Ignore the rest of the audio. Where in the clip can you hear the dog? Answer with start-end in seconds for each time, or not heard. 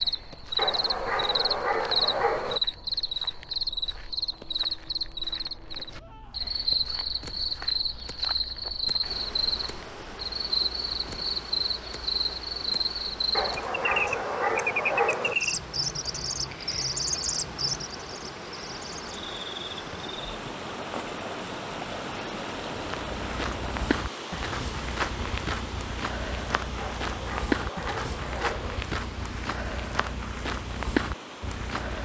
0.6-2.6, 13.3-15.3, 26.8-28.8.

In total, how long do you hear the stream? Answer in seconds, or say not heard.
23 s.